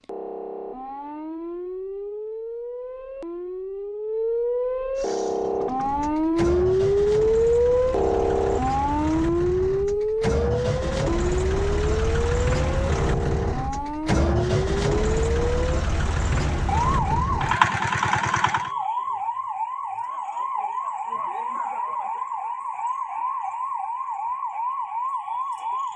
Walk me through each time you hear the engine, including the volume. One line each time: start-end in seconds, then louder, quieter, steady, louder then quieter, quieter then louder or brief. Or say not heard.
5.0-18.7 louder.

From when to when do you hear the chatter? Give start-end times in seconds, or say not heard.
not heard.